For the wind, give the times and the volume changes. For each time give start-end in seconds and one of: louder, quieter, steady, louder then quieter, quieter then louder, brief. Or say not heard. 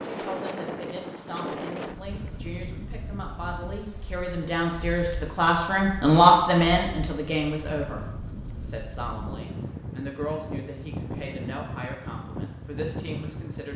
0.0-13.7 quieter then louder.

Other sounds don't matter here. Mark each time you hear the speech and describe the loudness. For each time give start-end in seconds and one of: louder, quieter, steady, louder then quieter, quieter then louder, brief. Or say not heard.
0.0-13.7 louder then quieter.